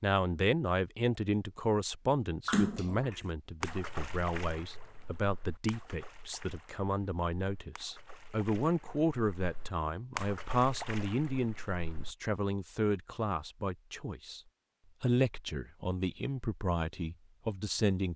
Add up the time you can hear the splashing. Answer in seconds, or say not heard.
10 s.